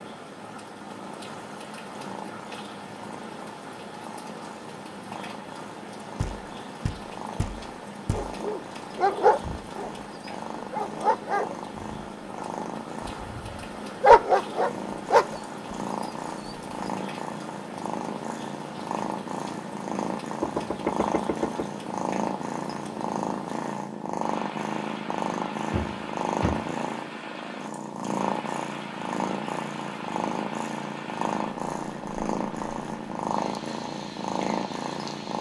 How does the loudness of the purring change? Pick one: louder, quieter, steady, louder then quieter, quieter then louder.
louder.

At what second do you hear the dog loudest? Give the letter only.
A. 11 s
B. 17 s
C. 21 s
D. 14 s
D.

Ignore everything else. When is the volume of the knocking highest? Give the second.
21 s.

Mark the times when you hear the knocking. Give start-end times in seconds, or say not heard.
6.2-8.4, 20.4-21.6, 25.7-26.6.